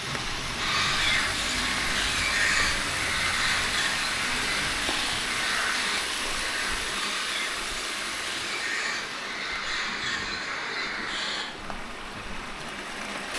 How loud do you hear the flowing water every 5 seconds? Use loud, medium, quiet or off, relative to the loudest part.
loud, loud, medium.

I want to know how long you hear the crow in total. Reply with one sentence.
The crow can be heard for 11 seconds in total.